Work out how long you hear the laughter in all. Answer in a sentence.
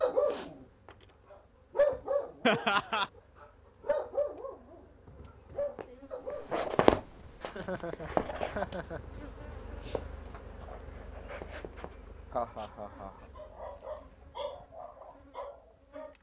You can hear the laughter for 3 seconds altogether.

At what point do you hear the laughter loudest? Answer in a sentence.
The loudest moment of the laughter is at 3 seconds.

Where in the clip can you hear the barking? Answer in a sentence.
The barking can be heard from 0.0 to 6.7 s and from 13.3 to 16.1 s.